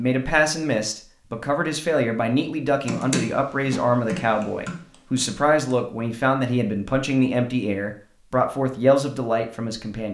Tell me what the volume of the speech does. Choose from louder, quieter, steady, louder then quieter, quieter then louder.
steady.